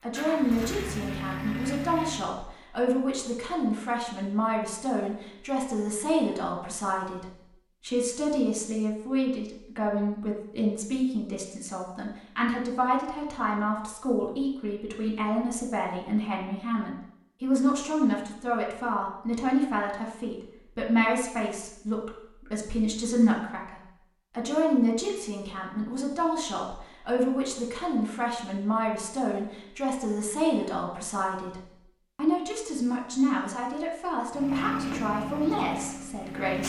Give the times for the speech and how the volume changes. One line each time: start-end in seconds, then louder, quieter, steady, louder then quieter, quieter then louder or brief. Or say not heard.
0.0-36.6 steady.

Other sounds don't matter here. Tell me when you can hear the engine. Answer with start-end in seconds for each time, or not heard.
0.1-2.3, 34.3-36.6.